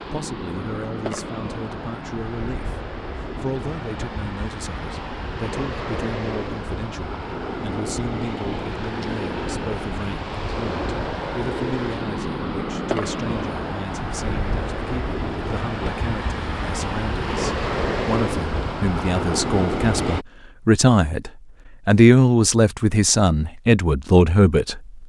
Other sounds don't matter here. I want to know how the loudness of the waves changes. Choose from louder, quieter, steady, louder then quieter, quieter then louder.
louder.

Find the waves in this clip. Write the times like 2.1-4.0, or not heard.
0.0-20.2.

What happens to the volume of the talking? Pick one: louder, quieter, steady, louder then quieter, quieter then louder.
louder.